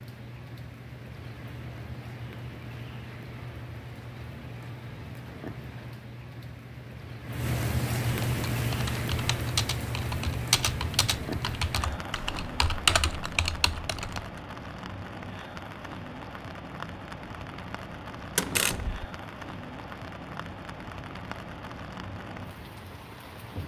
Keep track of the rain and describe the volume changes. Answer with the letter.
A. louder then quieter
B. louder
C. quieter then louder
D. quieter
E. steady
A.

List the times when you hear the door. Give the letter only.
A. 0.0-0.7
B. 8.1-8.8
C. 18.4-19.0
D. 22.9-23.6
C.